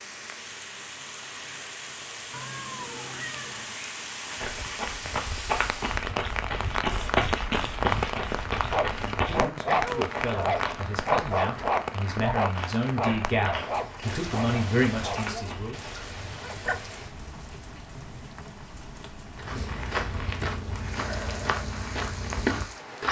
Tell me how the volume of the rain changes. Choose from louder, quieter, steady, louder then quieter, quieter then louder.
louder then quieter.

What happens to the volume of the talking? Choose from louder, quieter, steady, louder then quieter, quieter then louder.
louder.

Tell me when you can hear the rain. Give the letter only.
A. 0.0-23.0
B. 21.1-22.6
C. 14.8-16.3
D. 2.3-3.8
A.